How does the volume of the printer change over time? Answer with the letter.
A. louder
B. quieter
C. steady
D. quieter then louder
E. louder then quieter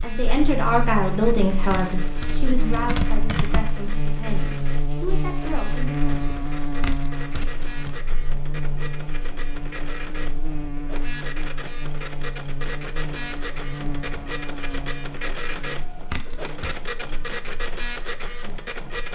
A.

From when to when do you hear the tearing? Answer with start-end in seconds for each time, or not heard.
1.7-3.8, 6.8-8.0, 16.1-16.8.